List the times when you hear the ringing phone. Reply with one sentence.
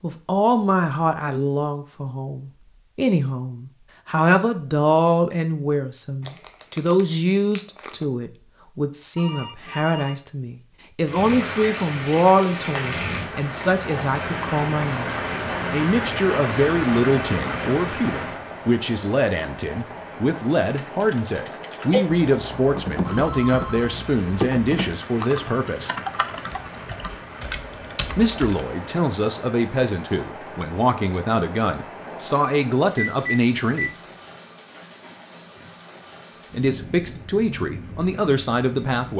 You can hear the ringing phone from 9.2 to 10.2 s, from 23.1 to 23.9 s and from 33.0 to 33.9 s.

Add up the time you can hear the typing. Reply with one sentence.
The typing can be heard for 8 seconds in total.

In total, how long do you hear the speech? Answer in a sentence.
You can hear the speech for 34 seconds altogether.